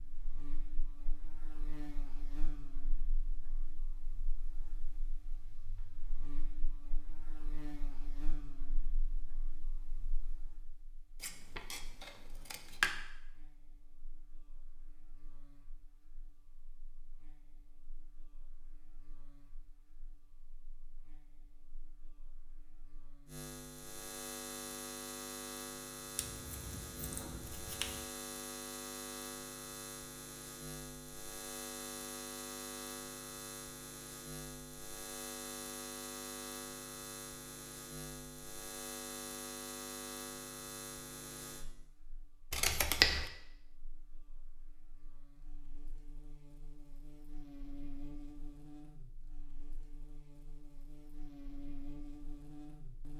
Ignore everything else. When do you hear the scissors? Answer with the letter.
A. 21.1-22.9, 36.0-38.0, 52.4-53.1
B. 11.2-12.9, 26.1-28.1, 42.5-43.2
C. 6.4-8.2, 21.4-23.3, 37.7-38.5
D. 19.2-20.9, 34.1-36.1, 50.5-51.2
B.